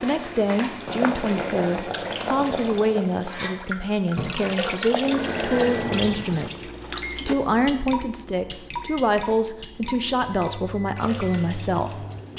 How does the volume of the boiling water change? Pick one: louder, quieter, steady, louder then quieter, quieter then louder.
quieter then louder.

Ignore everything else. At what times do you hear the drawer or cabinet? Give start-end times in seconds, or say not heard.
not heard.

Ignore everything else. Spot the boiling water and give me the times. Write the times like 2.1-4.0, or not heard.
0.0-6.5.